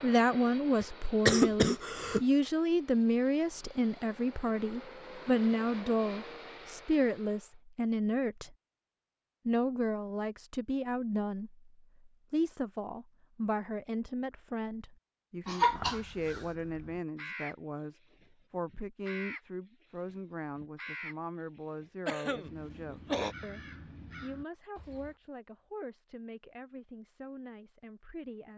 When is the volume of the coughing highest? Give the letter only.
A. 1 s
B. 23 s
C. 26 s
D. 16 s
A.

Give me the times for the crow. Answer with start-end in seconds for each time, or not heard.
15.6-25.1.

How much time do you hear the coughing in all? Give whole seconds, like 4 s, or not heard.
4 s.